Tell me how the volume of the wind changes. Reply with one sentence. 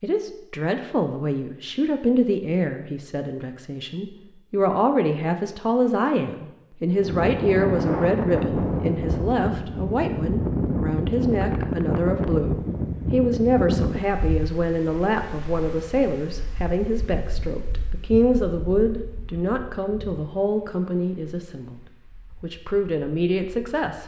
The volume of the wind goes down.